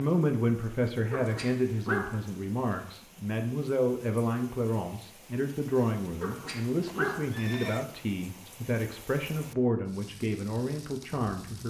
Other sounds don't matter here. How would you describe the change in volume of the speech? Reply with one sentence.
The volume of the speech stays about the same.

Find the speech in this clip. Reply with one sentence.
The speech can be heard from 0.0 to 11.6 s.